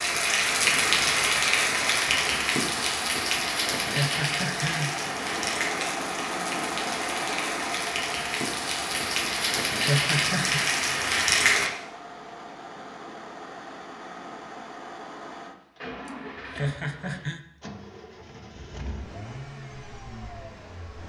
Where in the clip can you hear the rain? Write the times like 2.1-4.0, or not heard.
0.0-11.7.